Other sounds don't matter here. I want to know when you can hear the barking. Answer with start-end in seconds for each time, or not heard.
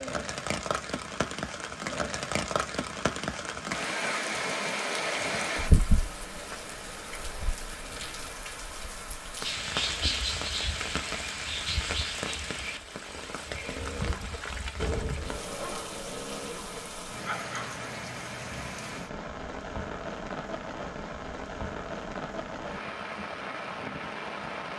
13.4-17.8.